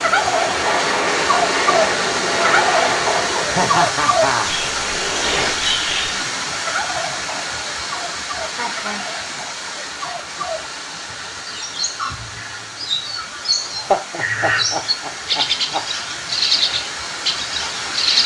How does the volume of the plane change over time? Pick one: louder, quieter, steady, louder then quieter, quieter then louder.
quieter.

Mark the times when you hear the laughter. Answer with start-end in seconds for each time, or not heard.
3.5-4.5, 8.5-9.1, 13.6-15.8.